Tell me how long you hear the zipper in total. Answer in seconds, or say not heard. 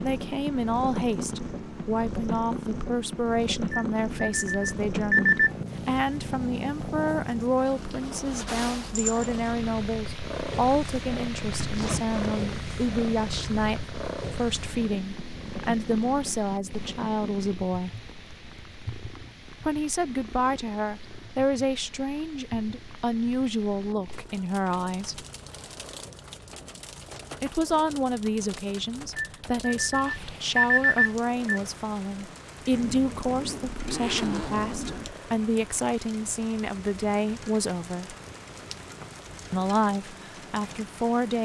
3 s.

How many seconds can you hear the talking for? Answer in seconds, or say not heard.
36 s.